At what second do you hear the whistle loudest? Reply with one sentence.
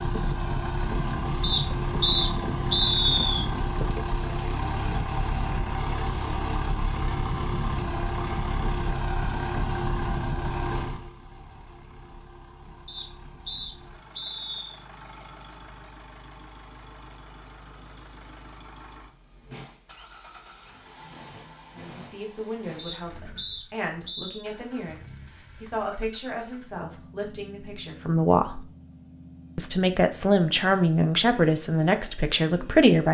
The volume of the whistle peaks at 3 seconds.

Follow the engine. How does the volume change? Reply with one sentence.
The volume of the engine goes down.